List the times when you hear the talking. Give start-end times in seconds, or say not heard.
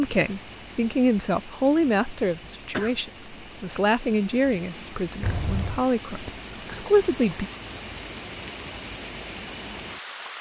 0.0-7.5.